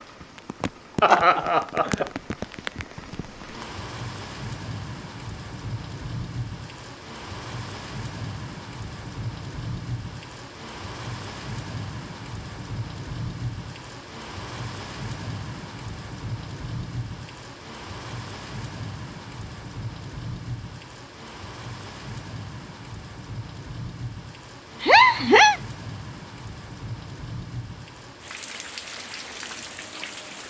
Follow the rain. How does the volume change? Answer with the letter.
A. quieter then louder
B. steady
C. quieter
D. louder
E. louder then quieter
B.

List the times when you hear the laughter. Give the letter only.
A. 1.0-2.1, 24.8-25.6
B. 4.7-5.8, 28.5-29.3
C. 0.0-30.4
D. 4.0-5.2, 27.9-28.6
A.